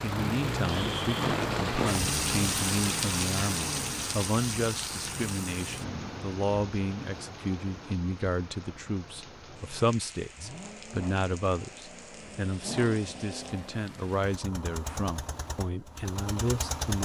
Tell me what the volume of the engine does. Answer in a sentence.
The volume of the engine goes down, then up.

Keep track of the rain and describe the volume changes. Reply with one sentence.
The volume of the rain goes down.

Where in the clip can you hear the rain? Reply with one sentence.
The rain can be heard from 0.0 to 14.4 s.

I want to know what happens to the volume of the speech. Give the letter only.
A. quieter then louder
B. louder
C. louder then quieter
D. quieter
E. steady
E.